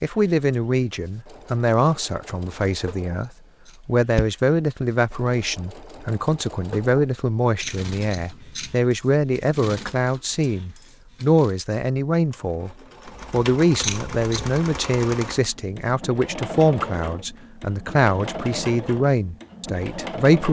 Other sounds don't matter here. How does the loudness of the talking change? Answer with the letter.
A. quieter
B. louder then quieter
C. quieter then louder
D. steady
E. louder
D.